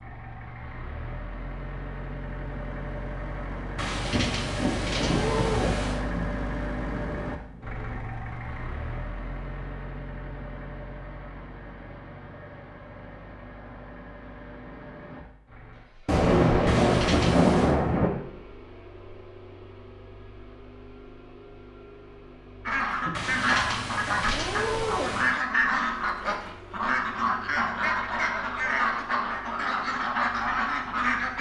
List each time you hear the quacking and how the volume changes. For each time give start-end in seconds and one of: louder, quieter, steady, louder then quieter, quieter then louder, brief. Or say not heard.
22.6-31.3 steady.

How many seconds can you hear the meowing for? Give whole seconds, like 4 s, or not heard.
6 s.